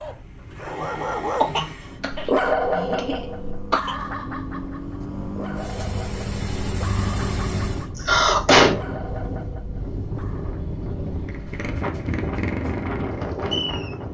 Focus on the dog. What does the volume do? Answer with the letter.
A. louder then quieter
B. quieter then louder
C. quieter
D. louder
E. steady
C.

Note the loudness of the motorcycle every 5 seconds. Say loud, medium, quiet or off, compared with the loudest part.
medium, loud, loud.